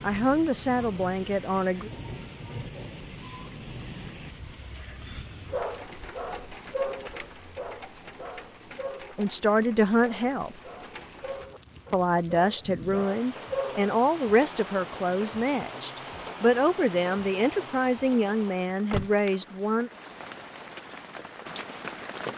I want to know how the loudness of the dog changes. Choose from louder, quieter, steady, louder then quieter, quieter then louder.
quieter then louder.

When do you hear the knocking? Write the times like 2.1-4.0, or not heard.
not heard.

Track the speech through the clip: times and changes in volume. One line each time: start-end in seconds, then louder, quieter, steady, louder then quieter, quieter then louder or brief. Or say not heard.
0.0-1.9 brief
9.2-10.6 brief
11.9-19.9 steady.